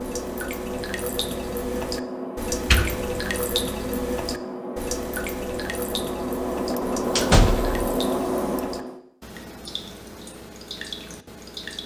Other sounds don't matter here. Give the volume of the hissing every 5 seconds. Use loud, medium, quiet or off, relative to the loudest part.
medium, loud, off.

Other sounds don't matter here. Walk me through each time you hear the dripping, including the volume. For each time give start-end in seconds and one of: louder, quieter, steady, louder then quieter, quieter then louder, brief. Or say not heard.
0.0-11.8 quieter.